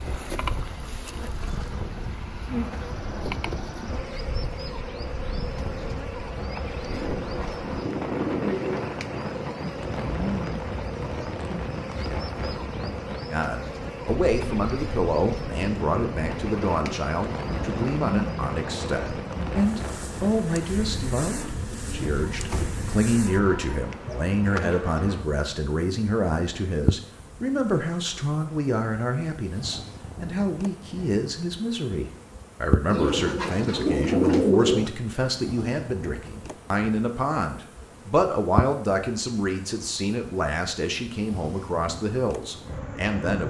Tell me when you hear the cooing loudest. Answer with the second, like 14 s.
34 s.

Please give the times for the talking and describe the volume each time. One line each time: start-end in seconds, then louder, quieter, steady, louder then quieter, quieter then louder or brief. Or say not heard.
13.3-43.4 steady.